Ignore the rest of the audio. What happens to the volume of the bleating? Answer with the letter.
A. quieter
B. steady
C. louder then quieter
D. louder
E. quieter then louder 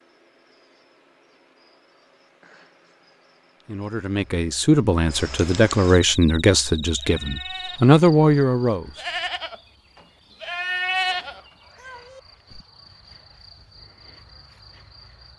C.